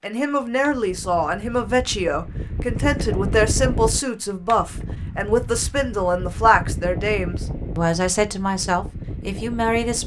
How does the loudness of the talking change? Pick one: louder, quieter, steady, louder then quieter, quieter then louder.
steady.